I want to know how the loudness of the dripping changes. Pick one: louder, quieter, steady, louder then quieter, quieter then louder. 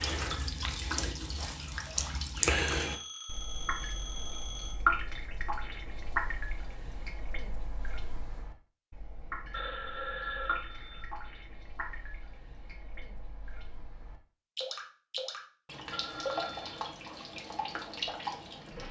quieter then louder.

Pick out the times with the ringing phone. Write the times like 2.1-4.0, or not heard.
2.8-4.8, 9.5-11.1, 15.9-16.8.